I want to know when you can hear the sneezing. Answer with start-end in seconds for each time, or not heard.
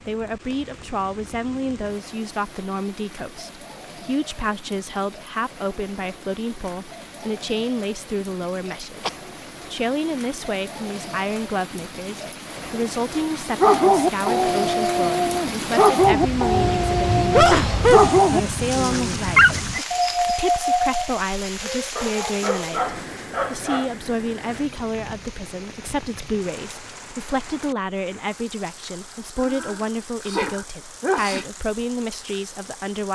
8.7-9.1, 17.3-18.5, 29.4-31.4.